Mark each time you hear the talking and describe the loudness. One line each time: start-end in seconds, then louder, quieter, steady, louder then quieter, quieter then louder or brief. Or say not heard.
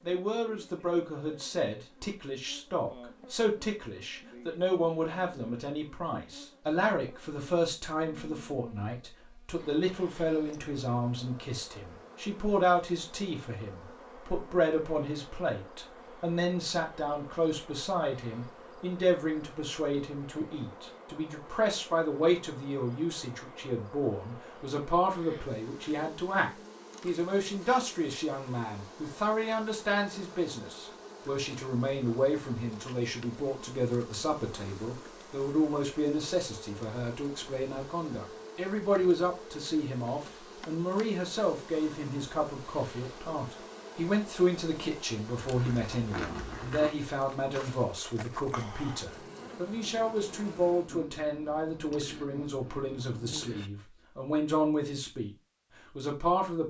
0.0-55.3 steady
56.0-56.6 brief.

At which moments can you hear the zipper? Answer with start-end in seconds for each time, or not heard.
45.4-46.9.